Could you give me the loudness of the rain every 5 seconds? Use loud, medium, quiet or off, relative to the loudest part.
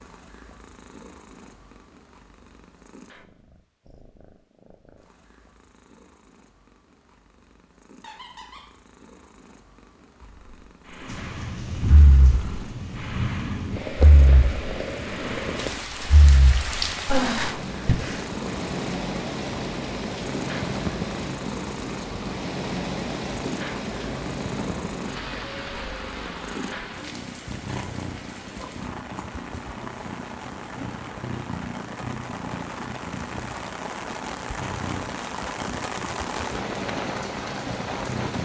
off, off, loud, loud, loud, medium, medium, loud.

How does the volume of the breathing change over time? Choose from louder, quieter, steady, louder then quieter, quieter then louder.
quieter then louder.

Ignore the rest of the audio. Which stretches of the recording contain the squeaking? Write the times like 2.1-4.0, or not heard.
8.0-8.7.